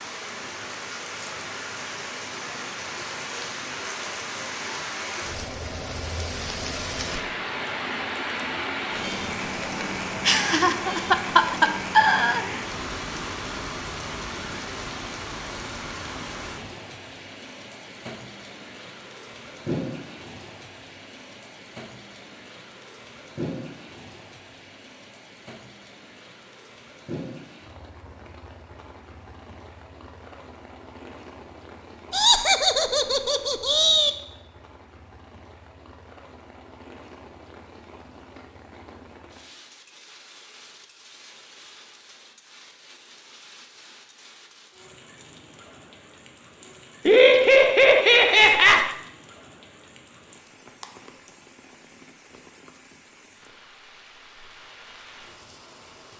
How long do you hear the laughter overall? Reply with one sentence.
The laughter can be heard for 6 seconds in total.